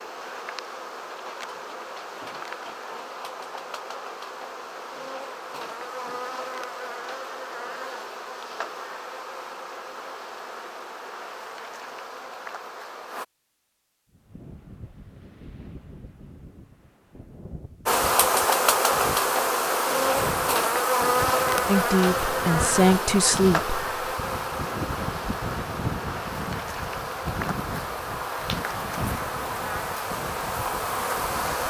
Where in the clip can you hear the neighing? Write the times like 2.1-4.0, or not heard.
not heard.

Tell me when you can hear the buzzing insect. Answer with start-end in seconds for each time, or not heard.
0.0-13.2, 17.9-31.6.